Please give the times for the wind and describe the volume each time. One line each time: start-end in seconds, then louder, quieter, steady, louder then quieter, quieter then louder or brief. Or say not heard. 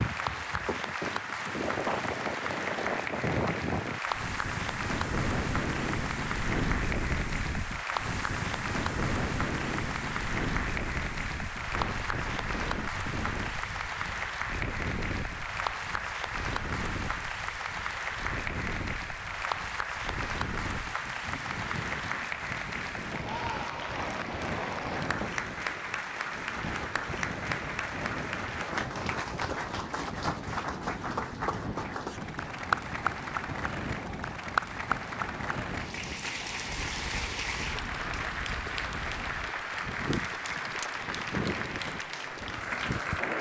0.0-43.3 quieter.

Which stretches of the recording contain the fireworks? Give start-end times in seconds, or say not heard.
not heard.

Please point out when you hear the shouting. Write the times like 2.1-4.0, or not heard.
not heard.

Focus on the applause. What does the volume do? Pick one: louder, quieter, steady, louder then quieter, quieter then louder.
steady.